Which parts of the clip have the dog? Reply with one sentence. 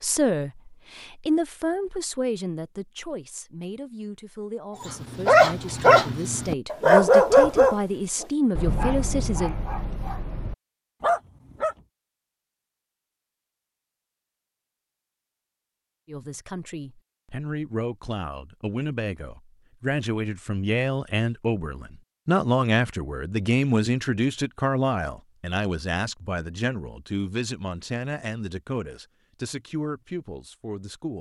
You can hear the dog from 4.8 to 11.8 s.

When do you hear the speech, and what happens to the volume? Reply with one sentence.
You can hear the speech from 0.0 to 9.6 s, getting quieter then louder; and from 16.1 to 31.1 s, getting louder then quieter.